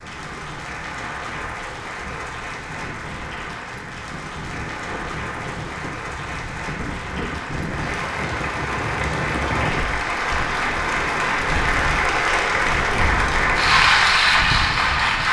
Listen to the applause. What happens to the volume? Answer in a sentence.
The volume of the applause goes up.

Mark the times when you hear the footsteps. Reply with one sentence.
The footsteps can't be heard in this clip.